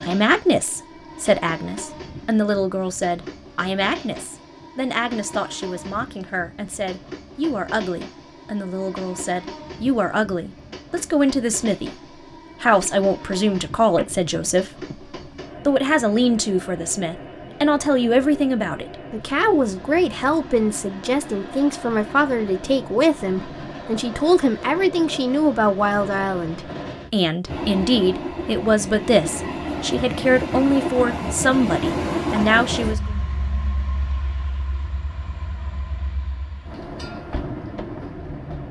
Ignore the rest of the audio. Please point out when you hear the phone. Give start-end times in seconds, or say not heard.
13.9-14.9.